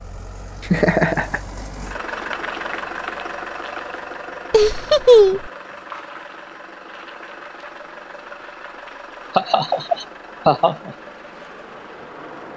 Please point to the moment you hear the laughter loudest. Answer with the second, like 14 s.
5 s.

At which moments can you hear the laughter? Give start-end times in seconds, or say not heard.
0.7-1.4, 4.5-5.5, 9.3-10.9.